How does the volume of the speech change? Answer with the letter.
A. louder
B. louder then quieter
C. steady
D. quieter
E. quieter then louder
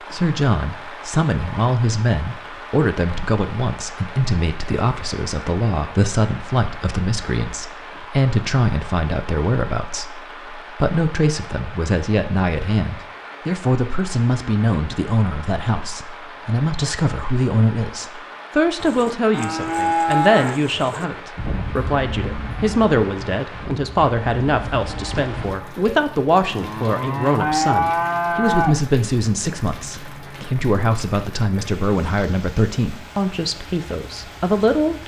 C.